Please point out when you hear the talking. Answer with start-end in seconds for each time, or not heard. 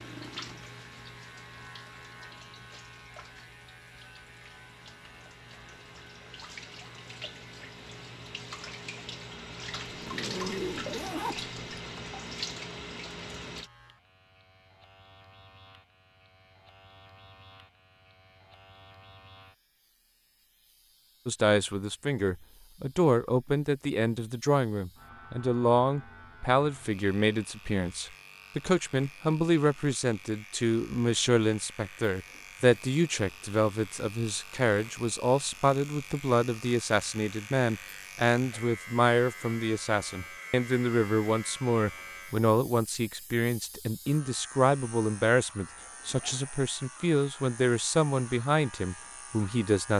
21.2-49.9.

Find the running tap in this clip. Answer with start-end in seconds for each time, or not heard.
0.0-13.7.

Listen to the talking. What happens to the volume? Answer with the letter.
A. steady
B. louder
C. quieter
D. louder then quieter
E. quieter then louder
A.